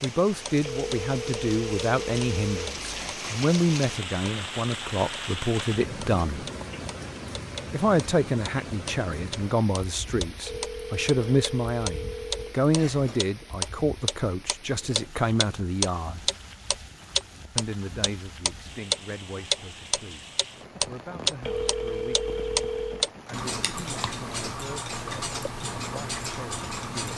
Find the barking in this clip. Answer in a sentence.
You can't hear the barking here.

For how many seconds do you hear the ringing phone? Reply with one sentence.
The ringing phone can be heard for 7 seconds in total.